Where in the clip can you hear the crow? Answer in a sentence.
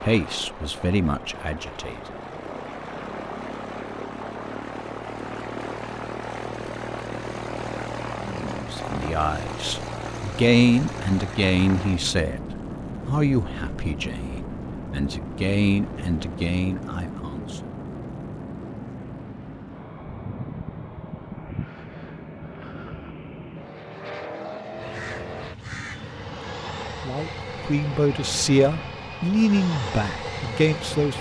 You can hear the crow from 24.7 to 26.5 s.